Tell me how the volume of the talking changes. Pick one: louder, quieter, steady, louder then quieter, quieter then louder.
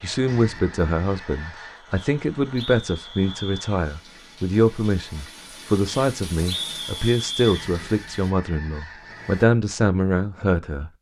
steady.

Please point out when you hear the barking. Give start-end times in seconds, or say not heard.
not heard.